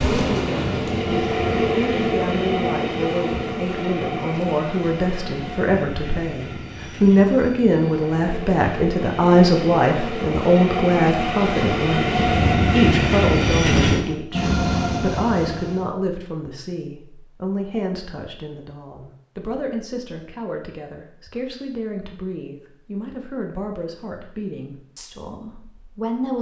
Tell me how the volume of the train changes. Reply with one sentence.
The loudness of the train goes down, then up.